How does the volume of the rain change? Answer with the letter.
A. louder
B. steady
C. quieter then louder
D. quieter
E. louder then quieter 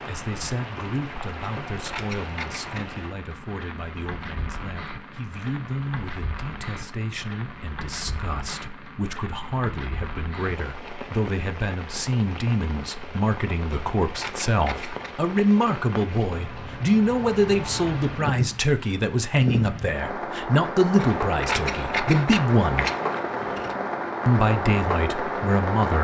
A.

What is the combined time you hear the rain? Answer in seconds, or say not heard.
26 s.